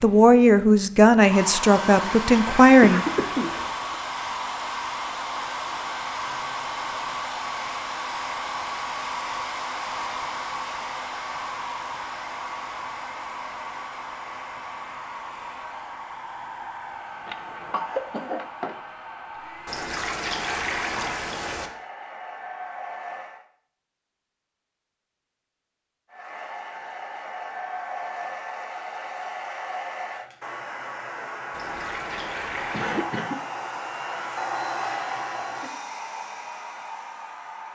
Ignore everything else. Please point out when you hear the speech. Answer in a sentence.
You can hear the speech from 0.0 to 3.0 s.